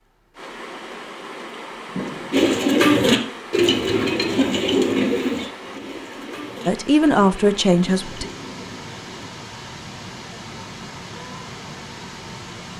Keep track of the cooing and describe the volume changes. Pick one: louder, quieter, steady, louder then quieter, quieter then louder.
quieter.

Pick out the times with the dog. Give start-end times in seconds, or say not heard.
not heard.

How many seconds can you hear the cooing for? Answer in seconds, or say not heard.
7 s.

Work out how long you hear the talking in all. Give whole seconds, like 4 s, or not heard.
2 s.